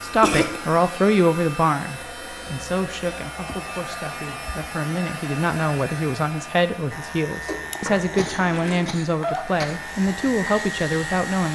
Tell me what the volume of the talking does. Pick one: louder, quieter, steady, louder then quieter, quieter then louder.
quieter then louder.